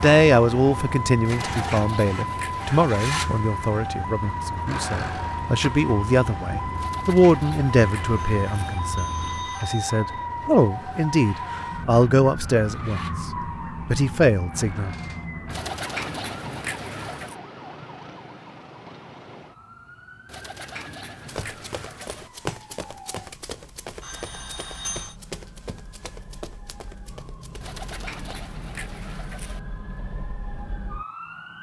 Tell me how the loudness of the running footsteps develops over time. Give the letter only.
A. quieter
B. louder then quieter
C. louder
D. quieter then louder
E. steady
A.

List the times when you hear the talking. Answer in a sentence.
You can hear the talking from 0.0 to 13.2 s and from 13.8 to 14.9 s.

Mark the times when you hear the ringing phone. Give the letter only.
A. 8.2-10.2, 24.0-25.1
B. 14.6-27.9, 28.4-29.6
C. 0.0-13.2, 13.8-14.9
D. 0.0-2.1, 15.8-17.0
A.